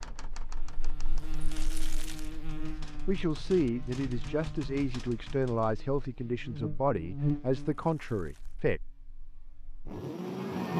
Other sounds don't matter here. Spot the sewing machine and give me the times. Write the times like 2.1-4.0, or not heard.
not heard.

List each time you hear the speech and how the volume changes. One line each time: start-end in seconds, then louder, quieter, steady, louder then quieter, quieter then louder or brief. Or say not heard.
3.0-8.8 steady.